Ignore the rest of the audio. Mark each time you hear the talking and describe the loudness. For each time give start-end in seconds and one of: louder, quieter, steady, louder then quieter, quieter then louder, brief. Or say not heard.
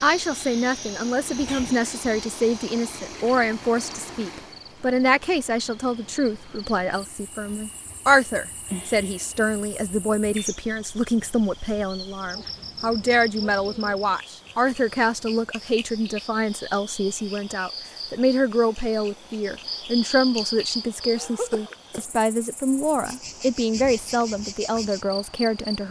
0.0-25.8 steady.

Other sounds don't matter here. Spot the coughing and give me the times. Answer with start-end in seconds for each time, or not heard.
1.4-1.8, 8.7-9.4, 21.1-22.1.